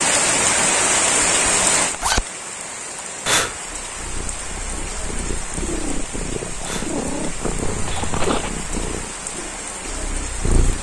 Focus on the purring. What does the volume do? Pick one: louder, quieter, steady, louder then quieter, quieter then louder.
louder then quieter.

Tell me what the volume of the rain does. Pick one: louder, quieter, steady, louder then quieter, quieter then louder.
quieter.